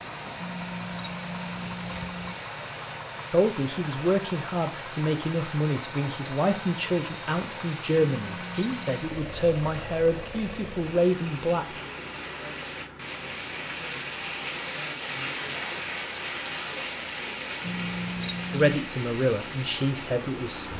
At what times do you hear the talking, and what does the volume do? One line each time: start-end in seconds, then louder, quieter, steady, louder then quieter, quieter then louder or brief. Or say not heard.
3.3-11.7 steady
18.5-20.7 brief.